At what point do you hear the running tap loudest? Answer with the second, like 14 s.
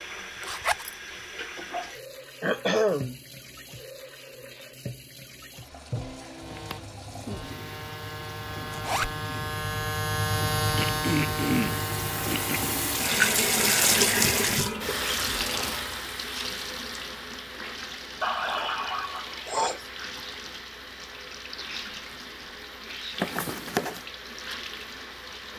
14 s.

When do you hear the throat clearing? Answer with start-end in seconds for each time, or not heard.
2.4-3.1, 10.8-12.8, 18.2-19.9.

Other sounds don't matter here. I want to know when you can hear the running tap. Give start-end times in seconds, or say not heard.
0.0-25.5.